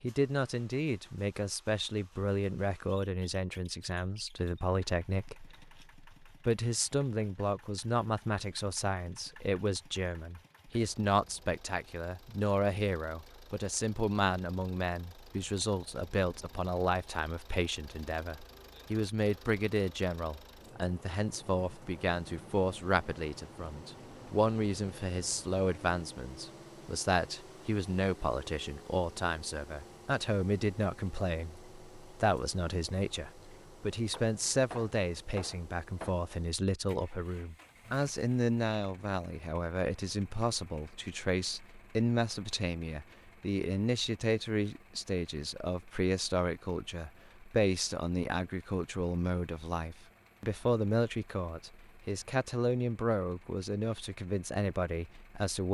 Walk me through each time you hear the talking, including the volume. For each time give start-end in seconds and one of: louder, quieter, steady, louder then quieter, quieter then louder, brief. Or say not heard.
0.0-55.7 steady.